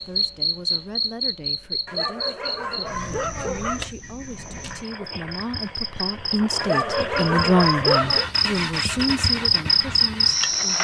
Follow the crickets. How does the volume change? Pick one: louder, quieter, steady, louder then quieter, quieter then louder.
quieter then louder.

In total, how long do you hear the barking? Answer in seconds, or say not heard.
4 s.